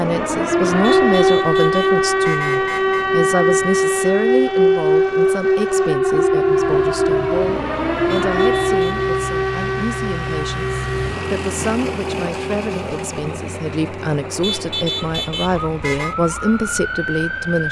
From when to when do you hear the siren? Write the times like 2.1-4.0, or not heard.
0.0-17.6.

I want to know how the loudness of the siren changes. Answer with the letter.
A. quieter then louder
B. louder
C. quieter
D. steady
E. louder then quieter
C.